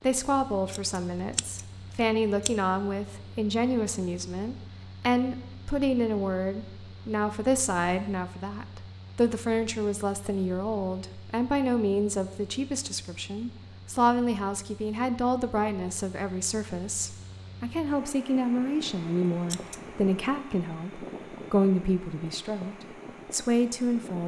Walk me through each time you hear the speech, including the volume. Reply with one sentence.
You can hear the speech from 0.0 to 24.2 s, at a steady volume.